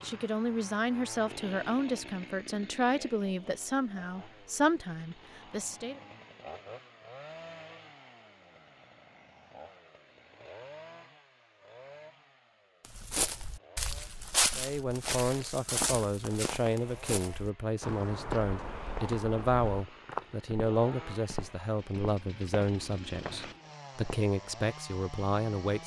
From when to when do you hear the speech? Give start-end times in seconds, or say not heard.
0.0-6.0, 14.6-25.8.